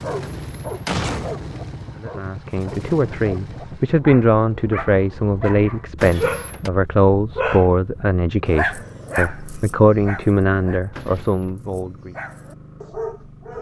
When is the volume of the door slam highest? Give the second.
1 s.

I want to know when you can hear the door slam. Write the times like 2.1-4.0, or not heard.
0.2-1.4, 6.0-6.7, 10.9-11.5.